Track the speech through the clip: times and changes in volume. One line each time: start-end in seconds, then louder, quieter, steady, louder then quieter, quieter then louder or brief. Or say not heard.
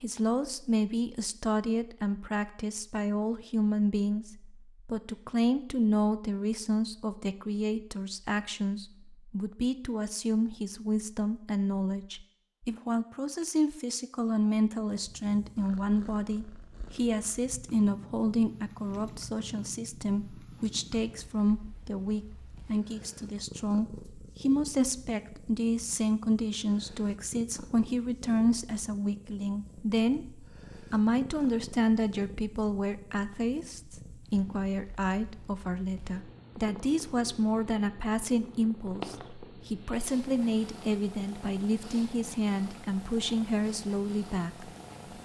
0.0-44.7 steady.